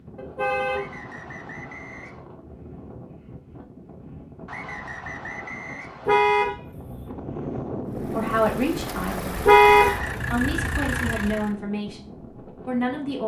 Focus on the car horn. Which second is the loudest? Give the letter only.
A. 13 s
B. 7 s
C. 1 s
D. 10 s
D.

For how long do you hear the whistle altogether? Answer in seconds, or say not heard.
4 s.